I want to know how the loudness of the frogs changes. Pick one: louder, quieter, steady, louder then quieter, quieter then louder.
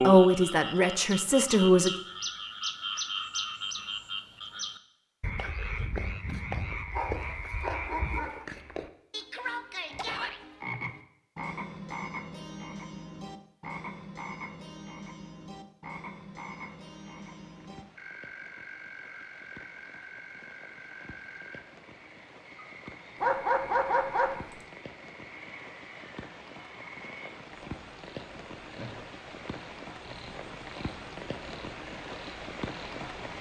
quieter.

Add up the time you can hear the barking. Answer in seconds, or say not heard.
3 s.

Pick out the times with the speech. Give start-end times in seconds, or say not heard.
0.0-1.9.